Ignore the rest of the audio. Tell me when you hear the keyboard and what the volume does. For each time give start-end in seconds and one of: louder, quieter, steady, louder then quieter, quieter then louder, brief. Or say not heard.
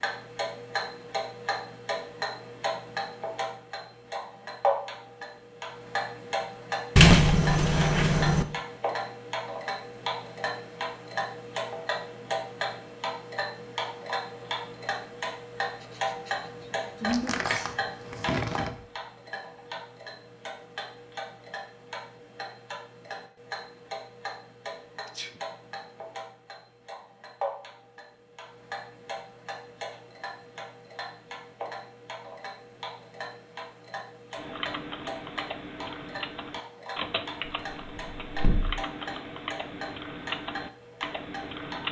34.4-41.8 steady.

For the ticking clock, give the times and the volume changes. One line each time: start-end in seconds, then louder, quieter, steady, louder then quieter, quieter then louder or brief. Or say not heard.
0.0-41.8 quieter.